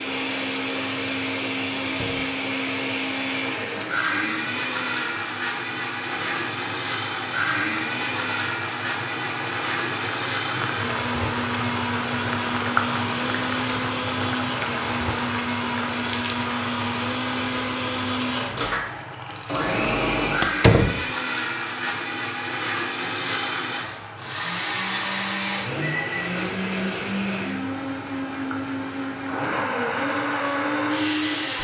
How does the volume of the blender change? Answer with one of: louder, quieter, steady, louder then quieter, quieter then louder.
steady.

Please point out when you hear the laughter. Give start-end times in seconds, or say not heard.
not heard.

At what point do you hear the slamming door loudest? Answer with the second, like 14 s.
21 s.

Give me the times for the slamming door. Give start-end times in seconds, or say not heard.
1.8-2.3, 20.4-21.1.